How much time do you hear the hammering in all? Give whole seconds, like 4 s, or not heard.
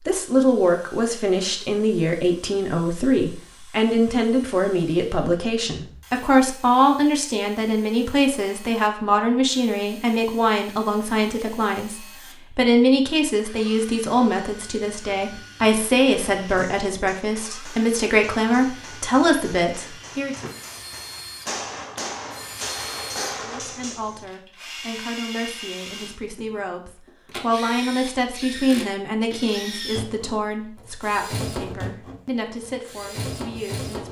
8 s.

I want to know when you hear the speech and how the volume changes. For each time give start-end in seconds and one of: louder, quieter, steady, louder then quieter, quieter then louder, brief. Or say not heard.
0.1-20.4 steady
23.6-34.0 louder then quieter.